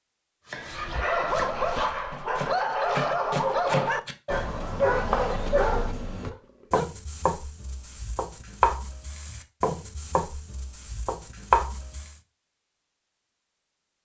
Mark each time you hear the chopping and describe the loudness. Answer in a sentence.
The chopping can be heard from 0.5 to 12.2 s, getting louder.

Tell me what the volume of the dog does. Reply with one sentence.
The volume of the dog stays about the same.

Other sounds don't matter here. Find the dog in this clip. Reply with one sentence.
You can hear the dog from 0.7 to 6.9 s.